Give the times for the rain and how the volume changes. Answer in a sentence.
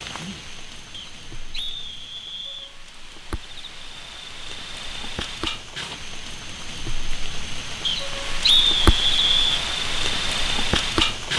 You can hear the rain from 0.0 to 11.3 s, getting louder.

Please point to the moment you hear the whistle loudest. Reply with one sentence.
The volume of the whistle peaks at 9 seconds.